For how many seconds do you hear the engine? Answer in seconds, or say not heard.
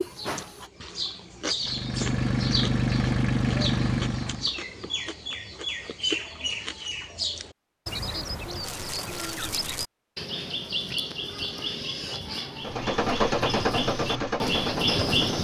6 s.